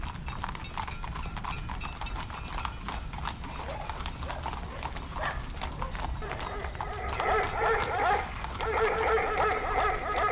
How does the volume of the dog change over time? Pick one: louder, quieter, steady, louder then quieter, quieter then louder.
louder.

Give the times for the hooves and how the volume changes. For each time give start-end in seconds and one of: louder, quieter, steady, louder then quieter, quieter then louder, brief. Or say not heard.
0.0-10.2 steady.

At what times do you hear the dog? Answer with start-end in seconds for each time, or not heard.
3.4-10.2.